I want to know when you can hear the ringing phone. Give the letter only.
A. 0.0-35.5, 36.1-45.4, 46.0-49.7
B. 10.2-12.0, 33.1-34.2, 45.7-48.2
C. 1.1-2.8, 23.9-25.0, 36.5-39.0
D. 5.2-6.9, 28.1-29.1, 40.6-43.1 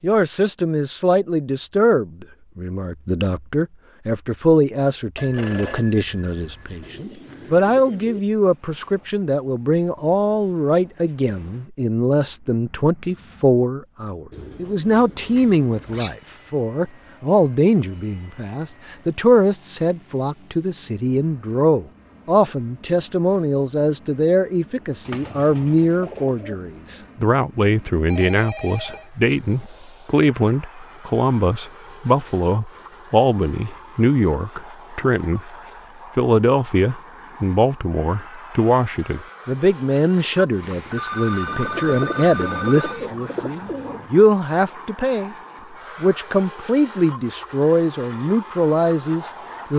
D.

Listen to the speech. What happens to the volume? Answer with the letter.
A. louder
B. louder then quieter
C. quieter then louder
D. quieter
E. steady
E.